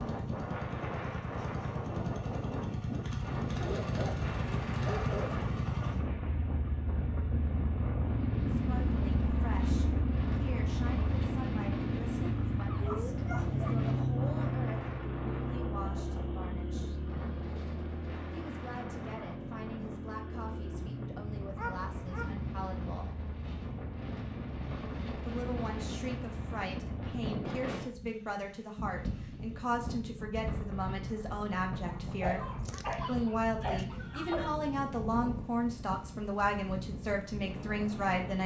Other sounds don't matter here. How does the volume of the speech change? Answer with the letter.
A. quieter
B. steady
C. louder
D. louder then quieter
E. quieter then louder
C.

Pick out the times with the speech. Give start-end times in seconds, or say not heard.
8.5-16.9, 18.3-23.1, 25.2-38.4.